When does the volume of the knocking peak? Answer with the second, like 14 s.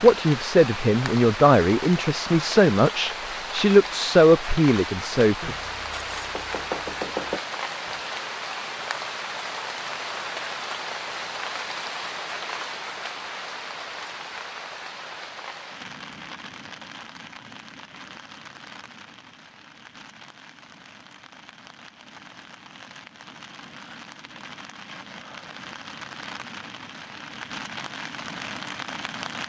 7 s.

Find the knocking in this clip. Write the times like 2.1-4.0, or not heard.
5.4-7.4.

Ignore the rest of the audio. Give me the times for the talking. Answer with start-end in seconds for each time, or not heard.
0.0-5.5.